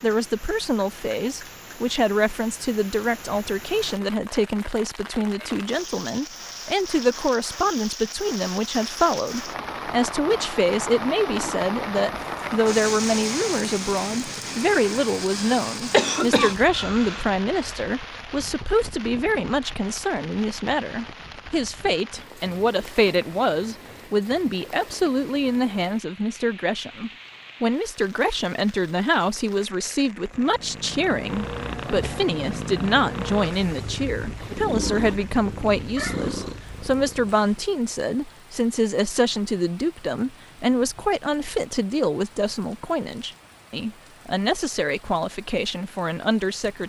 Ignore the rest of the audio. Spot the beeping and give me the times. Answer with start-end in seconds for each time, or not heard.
not heard.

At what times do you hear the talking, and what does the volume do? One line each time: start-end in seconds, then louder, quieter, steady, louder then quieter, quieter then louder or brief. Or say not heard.
0.0-46.8 steady.